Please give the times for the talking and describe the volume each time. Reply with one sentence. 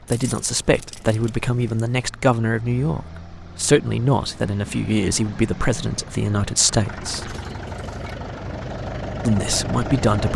You can hear the talking from 0.1 to 7.3 s, at a steady volume; and briefly from 9.2 to 10.3 s.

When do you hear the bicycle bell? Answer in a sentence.
You can't hear the bicycle bell here.